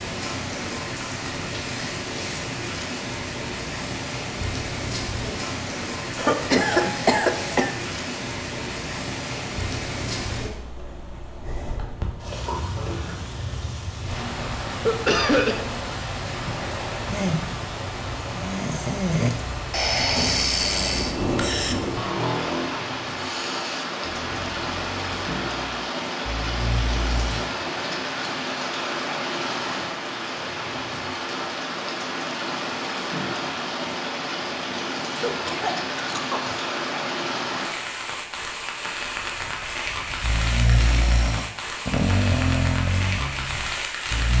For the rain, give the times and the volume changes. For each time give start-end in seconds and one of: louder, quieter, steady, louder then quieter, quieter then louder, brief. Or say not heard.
0.0-44.3 steady.